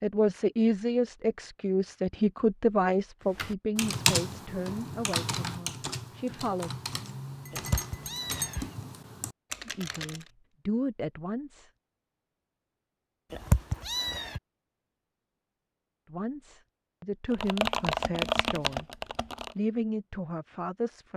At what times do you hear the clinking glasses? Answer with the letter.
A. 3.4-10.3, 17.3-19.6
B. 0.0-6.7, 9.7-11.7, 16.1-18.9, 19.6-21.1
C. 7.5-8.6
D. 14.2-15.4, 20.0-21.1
C.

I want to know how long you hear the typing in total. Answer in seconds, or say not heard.
9 s.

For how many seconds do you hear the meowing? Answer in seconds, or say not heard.
2 s.